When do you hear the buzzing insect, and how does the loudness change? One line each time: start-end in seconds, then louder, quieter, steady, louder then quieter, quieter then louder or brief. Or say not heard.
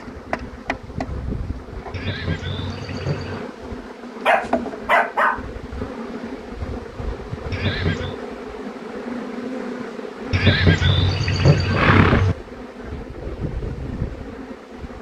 0.0-14.9 steady.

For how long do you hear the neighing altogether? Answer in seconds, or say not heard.
4 s.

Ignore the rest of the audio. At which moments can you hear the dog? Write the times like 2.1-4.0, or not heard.
4.2-5.4.